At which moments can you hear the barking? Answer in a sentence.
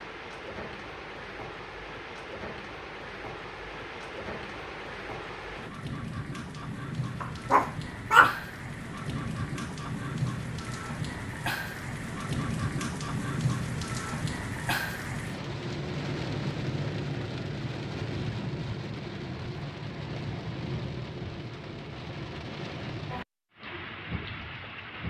You can hear the barking from 7.2 to 8.4 s.